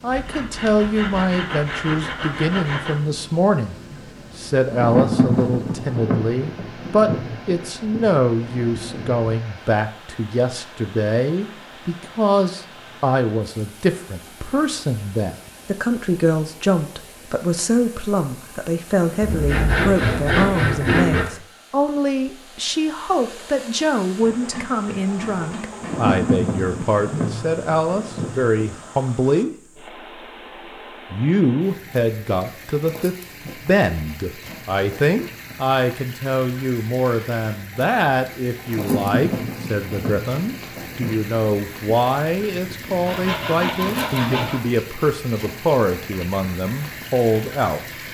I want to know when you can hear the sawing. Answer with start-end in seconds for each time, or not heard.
0.1-3.0, 19.2-21.2, 24.2-26.1, 43.0-44.6.